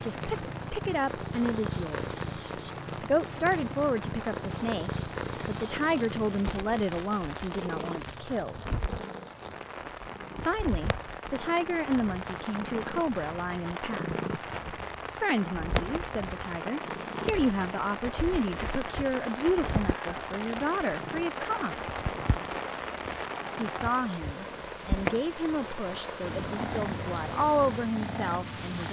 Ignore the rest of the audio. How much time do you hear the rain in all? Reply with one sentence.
You can hear the rain for 29 seconds altogether.